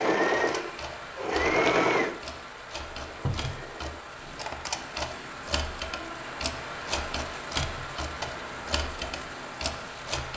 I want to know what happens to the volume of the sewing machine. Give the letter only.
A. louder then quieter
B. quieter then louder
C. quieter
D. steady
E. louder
C.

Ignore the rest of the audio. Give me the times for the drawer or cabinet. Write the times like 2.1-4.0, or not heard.
3.2-3.6, 7.5-8.0.